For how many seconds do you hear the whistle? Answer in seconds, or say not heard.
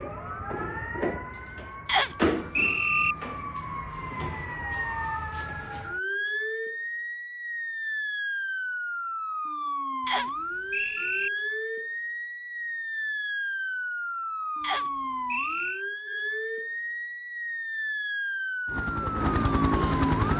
4 s.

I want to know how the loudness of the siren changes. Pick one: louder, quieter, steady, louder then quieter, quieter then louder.
steady.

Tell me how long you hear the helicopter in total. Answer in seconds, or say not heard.
2 s.